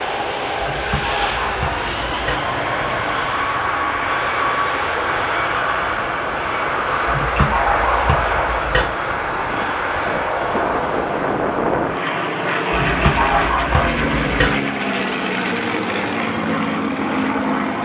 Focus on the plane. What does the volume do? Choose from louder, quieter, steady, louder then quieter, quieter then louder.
steady.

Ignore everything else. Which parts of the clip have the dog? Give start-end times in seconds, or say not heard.
0.6-2.4, 7.0-8.8, 12.7-14.5.